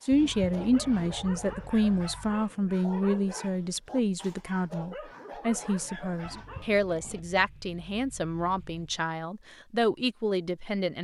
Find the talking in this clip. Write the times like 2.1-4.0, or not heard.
0.0-10.9.